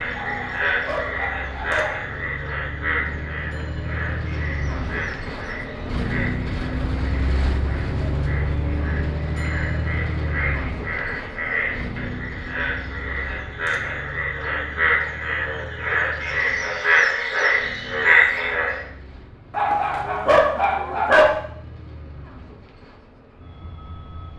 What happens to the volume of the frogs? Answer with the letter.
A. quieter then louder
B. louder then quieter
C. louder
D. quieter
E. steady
A.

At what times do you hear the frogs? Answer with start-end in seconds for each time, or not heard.
0.0-18.8.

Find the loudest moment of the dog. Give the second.
21 s.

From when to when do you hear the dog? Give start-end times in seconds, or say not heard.
0.1-1.9, 19.5-21.3.